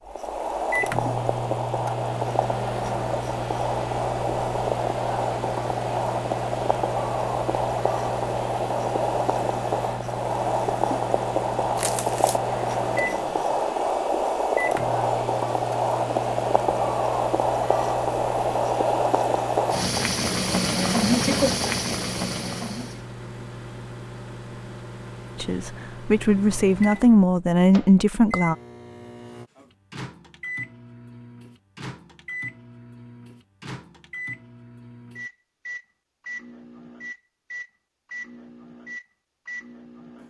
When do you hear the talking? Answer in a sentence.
You can hear the talking from 25.4 to 28.6 s.